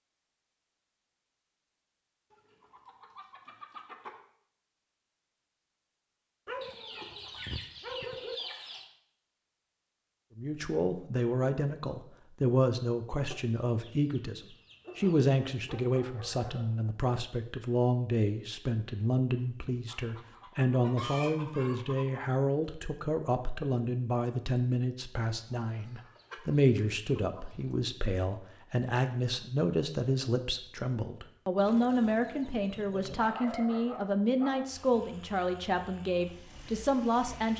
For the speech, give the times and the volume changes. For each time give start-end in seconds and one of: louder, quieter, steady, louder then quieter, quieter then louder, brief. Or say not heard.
10.3-37.5 steady.